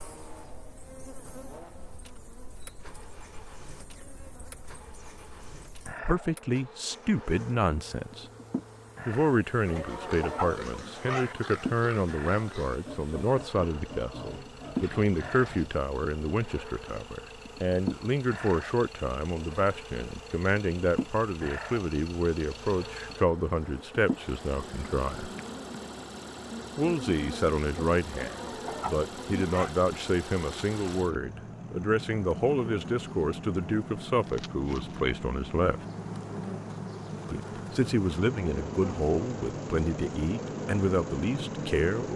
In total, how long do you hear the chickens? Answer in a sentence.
You can hear the chickens for 3 seconds altogether.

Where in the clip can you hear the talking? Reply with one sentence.
You can hear the talking from 6.0 to 8.2 s, from 9.1 to 25.3 s, from 26.8 to 35.9 s and from 37.3 to 42.1 s.